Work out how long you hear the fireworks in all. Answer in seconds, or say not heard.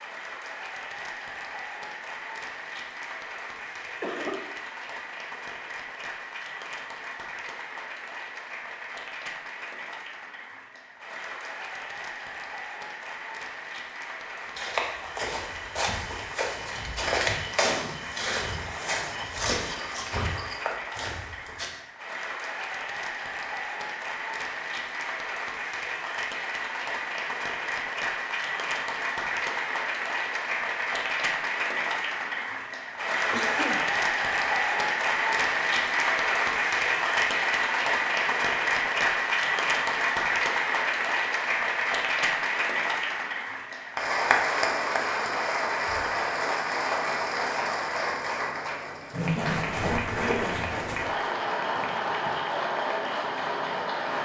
not heard.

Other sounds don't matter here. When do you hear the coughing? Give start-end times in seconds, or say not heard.
4.0-4.5, 33.3-33.9, 49.4-50.4.